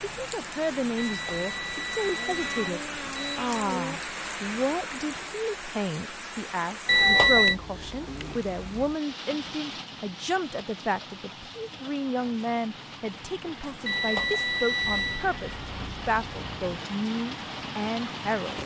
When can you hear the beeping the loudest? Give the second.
7 s.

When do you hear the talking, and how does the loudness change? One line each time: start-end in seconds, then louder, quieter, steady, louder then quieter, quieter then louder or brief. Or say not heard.
0.0-18.6 steady.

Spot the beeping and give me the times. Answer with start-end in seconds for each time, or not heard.
0.9-3.6, 6.8-7.5, 13.8-15.2.